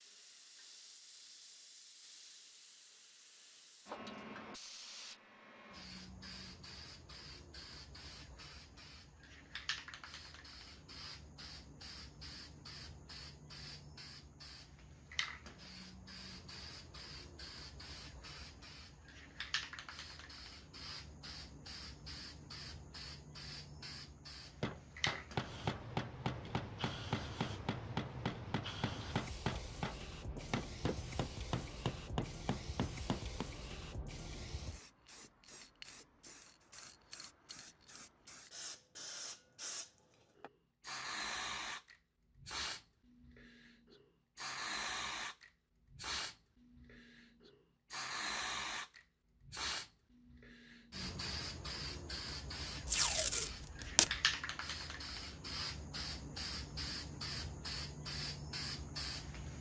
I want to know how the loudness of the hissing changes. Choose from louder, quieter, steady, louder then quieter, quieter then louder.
louder.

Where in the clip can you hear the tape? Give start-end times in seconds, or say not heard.
52.9-54.1.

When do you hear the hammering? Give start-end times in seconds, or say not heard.
24.6-33.5.